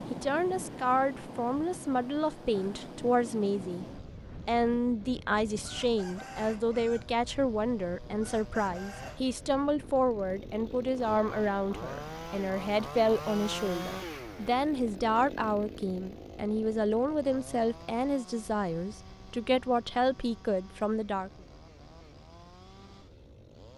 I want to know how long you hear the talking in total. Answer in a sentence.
The talking can be heard for 21 seconds in total.